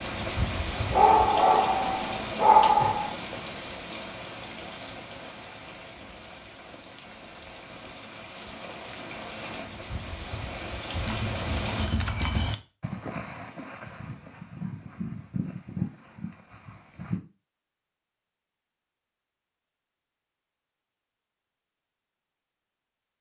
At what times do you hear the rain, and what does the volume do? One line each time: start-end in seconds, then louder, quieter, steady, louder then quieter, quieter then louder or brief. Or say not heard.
0.0-11.9 quieter then louder.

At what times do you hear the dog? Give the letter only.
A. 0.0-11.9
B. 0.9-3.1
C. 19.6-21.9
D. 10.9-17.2
B.